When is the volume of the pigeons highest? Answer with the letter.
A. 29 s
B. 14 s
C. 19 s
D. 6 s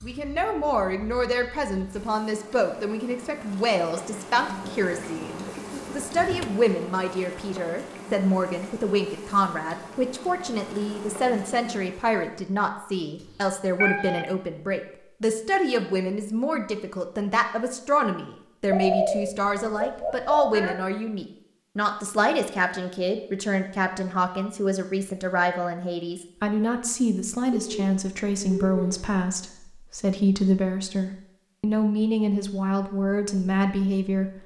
C.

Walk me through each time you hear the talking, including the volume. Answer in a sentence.
The talking can be heard from 0.0 to 34.4 s, at a steady volume.